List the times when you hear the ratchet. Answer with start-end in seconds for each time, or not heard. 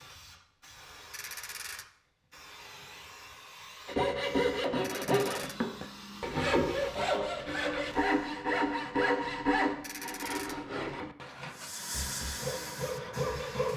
1.1-1.9, 4.8-5.5, 9.8-10.6.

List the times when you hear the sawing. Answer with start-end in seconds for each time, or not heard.
3.9-13.7.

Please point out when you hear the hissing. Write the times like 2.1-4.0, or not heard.
0.0-8.2, 11.4-13.7.